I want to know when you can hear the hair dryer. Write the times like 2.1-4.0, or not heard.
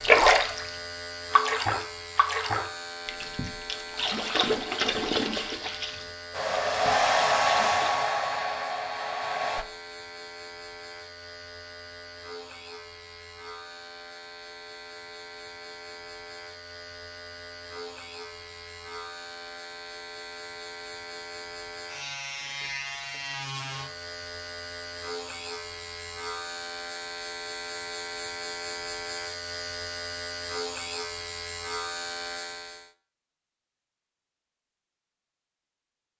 6.3-9.7.